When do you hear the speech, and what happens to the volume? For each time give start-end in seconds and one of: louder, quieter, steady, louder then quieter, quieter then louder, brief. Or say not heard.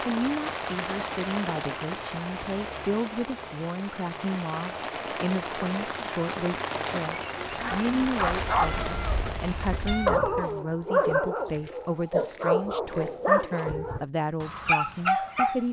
0.0-15.6 steady.